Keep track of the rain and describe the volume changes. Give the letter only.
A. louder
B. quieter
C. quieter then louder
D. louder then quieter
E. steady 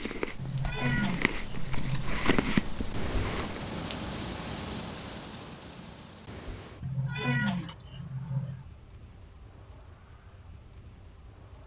D.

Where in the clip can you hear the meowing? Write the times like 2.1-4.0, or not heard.
0.3-2.2, 6.8-8.7.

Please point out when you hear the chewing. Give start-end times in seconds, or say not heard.
0.0-3.6.